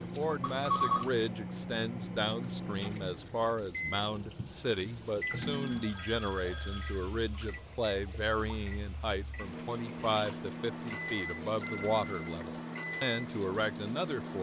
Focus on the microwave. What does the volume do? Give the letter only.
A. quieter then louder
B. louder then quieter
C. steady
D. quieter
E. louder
A.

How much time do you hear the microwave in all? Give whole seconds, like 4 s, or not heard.
14 s.